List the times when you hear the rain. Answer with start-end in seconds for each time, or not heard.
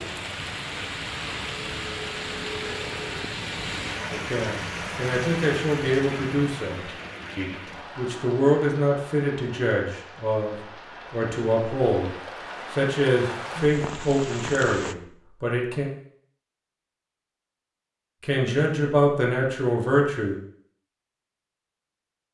0.0-14.9.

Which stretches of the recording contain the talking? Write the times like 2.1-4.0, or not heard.
4.1-12.1, 12.7-15.9, 18.2-20.4.